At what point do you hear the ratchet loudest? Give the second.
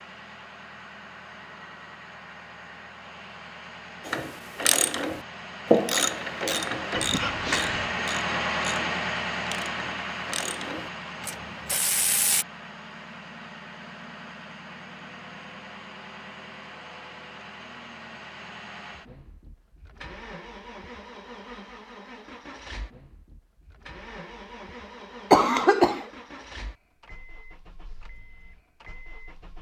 6 s.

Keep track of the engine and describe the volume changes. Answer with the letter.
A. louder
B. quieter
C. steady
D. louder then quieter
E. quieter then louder
D.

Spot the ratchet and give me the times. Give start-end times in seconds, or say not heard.
4.0-12.4.